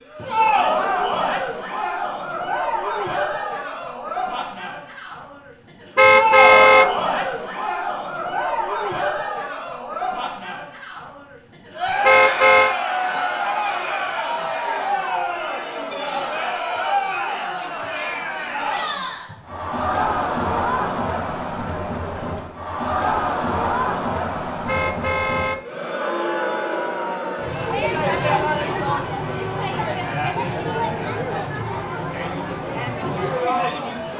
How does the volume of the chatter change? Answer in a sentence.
The volume of the chatter stays about the same.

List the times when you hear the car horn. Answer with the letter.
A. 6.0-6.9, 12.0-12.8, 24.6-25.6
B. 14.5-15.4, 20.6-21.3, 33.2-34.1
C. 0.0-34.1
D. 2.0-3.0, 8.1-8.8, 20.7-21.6
A.